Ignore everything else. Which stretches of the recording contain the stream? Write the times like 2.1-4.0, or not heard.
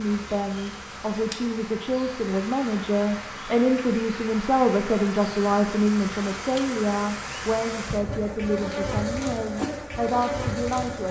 not heard.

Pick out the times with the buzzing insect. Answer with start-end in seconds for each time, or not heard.
0.0-11.0.